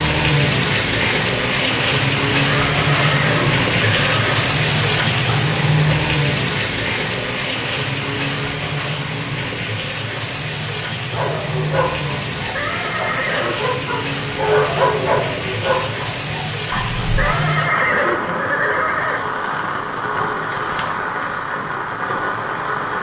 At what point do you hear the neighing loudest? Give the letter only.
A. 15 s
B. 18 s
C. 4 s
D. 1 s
B.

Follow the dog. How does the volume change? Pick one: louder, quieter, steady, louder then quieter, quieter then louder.
louder then quieter.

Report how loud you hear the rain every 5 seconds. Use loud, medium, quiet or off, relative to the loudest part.
loud, loud, medium, medium, medium.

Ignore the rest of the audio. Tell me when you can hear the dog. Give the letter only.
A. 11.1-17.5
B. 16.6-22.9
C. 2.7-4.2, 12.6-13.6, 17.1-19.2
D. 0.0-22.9
A.